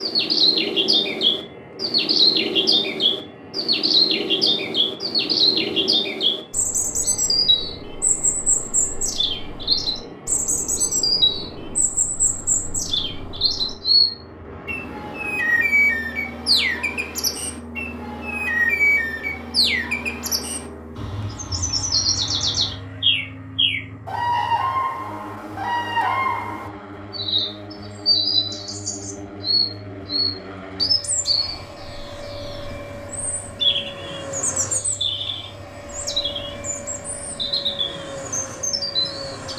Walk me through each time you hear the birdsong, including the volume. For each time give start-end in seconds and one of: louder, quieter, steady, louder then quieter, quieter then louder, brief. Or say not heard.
0.0-39.5 quieter.